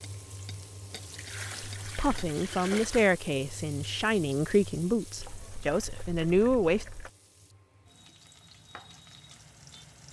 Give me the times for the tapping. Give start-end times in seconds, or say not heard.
0.0-2.2.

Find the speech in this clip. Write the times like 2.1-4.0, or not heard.
1.9-6.8.